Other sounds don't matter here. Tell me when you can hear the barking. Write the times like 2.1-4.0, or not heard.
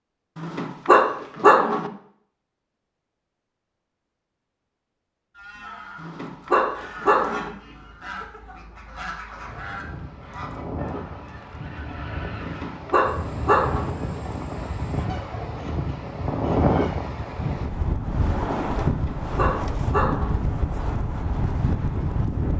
0.3-1.9, 6.0-7.5, 12.4-13.9, 18.9-20.4.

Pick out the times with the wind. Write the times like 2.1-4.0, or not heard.
9.3-22.5.